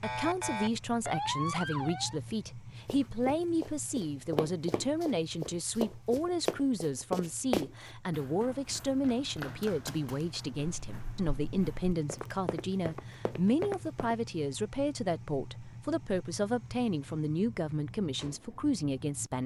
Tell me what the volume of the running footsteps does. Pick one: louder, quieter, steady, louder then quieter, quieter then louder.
quieter then louder.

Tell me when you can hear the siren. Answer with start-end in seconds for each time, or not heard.
0.0-2.2.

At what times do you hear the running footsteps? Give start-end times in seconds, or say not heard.
2.9-14.2.